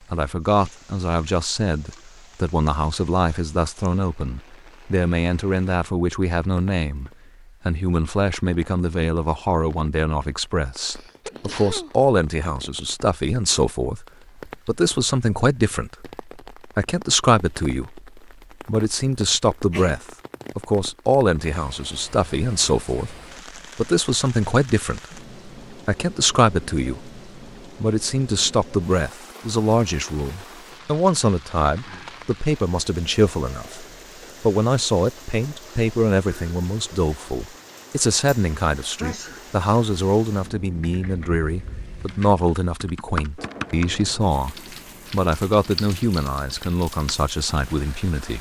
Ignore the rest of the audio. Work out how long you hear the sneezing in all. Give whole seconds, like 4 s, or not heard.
2 s.